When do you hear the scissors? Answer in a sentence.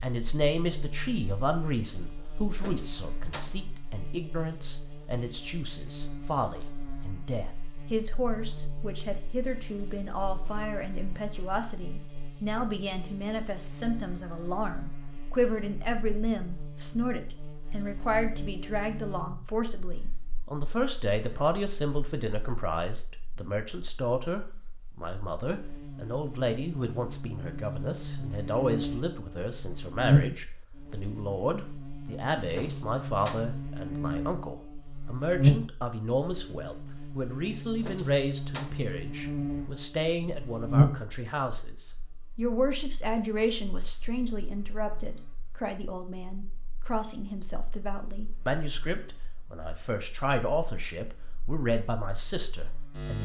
The scissors can't be heard in this clip.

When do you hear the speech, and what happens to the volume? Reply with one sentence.
You can hear the speech from 0.0 to 53.1 s, at a steady volume.